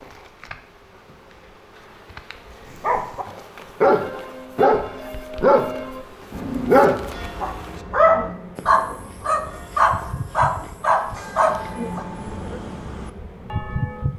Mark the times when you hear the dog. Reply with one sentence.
The dog can be heard from 2.8 to 12.1 s.